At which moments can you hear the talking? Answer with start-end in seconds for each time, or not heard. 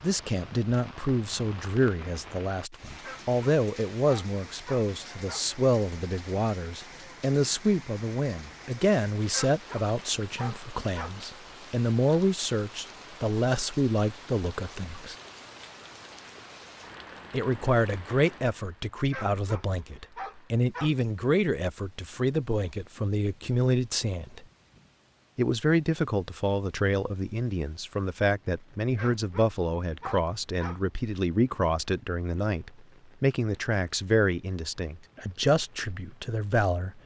0.0-15.2, 17.3-24.4, 25.4-37.0.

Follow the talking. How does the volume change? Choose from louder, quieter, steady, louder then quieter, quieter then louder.
steady.